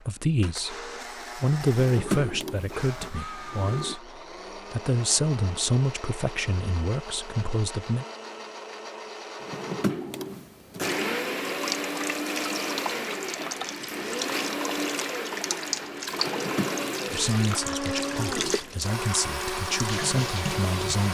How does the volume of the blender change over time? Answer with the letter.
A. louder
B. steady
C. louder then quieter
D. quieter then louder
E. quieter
A.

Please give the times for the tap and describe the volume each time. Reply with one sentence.
You can hear the tap from 10.8 to 21.1 s, at a steady volume.